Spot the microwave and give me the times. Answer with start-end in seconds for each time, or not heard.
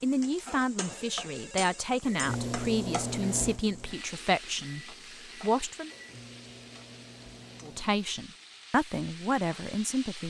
2.0-8.1.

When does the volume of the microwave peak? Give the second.
3 s.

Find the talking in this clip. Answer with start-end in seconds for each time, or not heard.
0.0-5.9, 7.6-10.2.